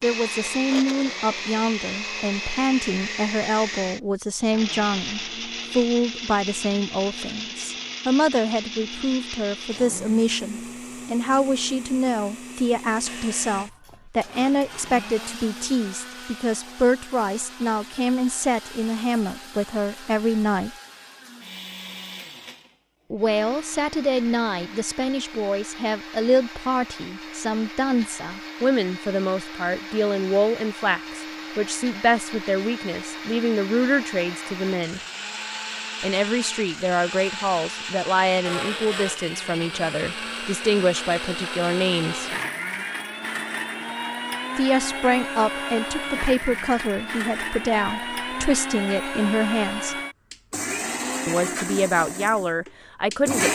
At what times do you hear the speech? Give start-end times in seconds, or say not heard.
0.0-20.7, 23.1-35.0, 36.0-42.3, 44.5-50.0, 51.2-53.4.